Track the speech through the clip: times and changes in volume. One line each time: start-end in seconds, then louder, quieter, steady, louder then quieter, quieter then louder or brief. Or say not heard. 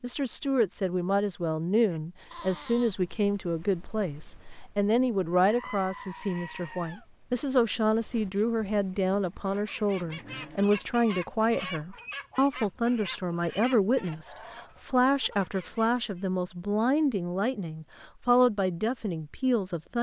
0.0-19.9 steady.